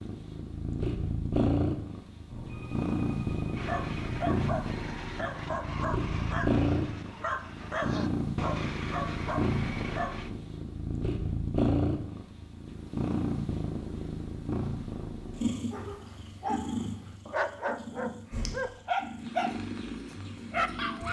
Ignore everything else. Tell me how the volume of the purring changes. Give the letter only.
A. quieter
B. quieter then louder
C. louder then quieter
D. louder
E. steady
A.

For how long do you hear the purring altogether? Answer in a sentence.
The purring can be heard for 21 seconds in total.